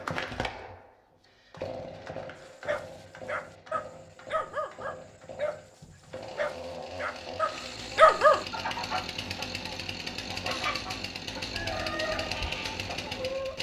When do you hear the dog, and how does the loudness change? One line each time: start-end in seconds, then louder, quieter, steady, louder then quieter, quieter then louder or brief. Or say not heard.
2.6-8.4 louder.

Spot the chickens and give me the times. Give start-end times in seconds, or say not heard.
8.4-13.5.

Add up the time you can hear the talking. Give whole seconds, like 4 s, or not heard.
not heard.